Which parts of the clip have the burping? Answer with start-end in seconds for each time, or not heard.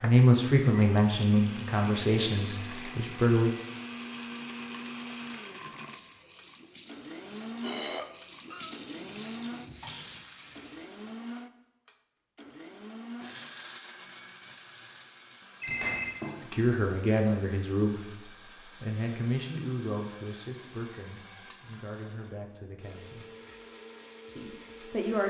7.6-8.8.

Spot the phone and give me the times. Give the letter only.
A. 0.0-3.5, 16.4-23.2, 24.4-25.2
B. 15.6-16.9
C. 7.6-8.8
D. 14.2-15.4
B.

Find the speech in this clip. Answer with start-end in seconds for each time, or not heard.
0.0-3.5, 16.4-23.2, 24.4-25.2.